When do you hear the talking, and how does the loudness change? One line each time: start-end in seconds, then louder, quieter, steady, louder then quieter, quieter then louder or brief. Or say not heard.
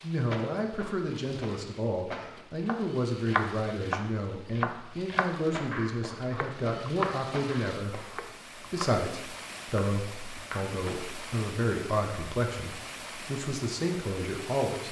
0.0-14.8 steady.